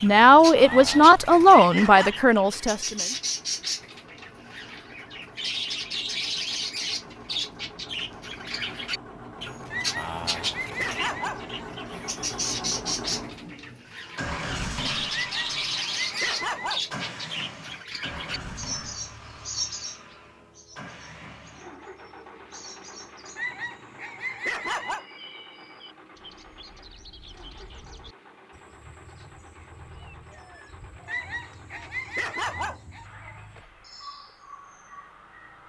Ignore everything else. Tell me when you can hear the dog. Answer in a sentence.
The dog can be heard from 0.7 to 2.2 s, from 9.7 to 11.7 s, from 15.1 to 17.1 s, from 23.4 to 25.1 s and from 31.1 to 33.0 s.